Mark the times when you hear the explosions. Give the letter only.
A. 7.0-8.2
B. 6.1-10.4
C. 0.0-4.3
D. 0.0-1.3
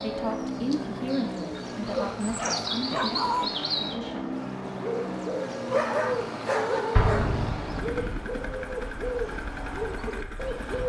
A.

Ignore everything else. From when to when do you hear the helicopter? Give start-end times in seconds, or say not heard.
0.0-10.8.